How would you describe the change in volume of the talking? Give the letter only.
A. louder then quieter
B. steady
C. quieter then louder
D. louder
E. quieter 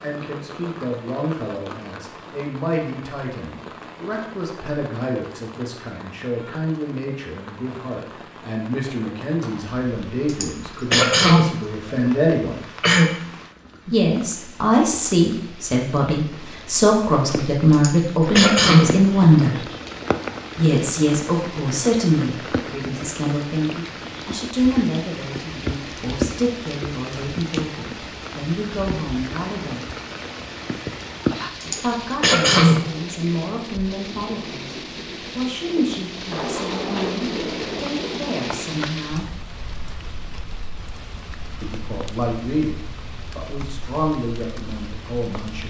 A.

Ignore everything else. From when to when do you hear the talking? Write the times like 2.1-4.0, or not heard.
0.0-12.7, 13.8-19.6, 20.6-29.9, 31.8-39.3, 41.6-45.6.